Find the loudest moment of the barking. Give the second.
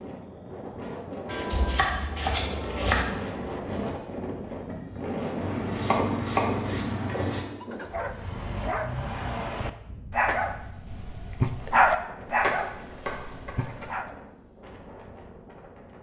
12 s.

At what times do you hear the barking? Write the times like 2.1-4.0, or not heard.
7.6-14.1.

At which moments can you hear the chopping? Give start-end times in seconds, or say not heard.
1.2-3.0, 5.4-7.4, 12.4-13.8.